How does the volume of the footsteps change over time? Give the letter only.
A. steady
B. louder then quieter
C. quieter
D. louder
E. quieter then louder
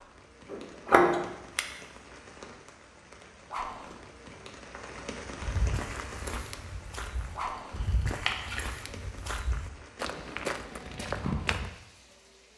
D.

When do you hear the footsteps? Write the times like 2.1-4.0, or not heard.
5.4-11.7.